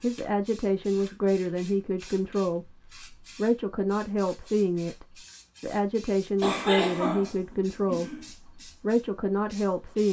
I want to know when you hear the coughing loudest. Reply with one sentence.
The volume of the coughing peaks at 7 seconds.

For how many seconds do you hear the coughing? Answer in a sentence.
The coughing can be heard for 2 seconds in total.